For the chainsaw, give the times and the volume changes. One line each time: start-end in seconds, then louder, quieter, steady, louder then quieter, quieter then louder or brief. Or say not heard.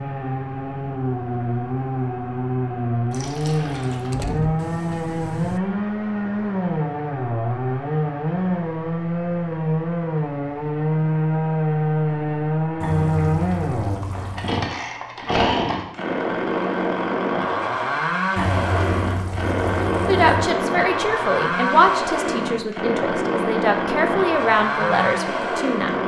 0.0-26.0 steady.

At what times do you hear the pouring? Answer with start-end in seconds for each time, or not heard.
3.1-4.2, 12.8-14.7, 18.4-20.4.